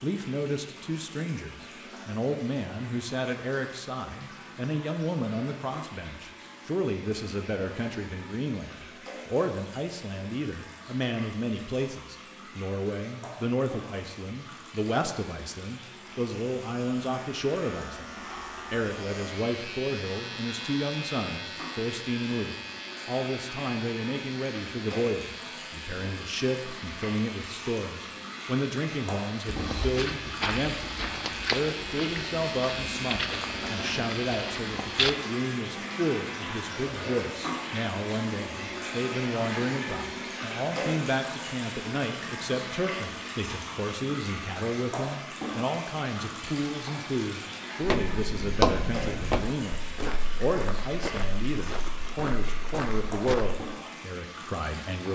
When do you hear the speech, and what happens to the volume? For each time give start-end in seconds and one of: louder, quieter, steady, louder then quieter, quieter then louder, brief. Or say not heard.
0.0-55.1 steady.